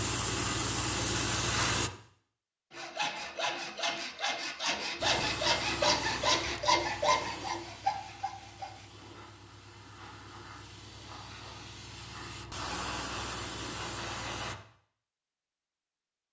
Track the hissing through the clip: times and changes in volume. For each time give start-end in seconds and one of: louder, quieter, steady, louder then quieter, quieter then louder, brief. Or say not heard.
0.0-1.9 brief
5.0-14.6 quieter then louder.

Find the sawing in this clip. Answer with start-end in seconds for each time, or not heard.
2.7-8.8.